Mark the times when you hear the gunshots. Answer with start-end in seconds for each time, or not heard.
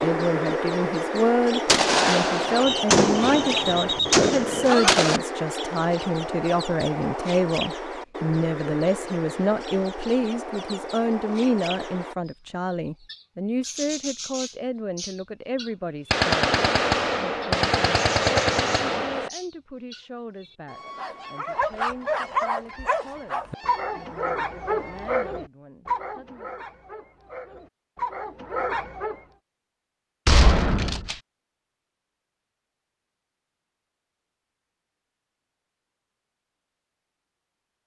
1.6-5.2, 16.1-19.3, 30.2-31.1.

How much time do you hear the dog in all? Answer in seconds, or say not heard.
8 s.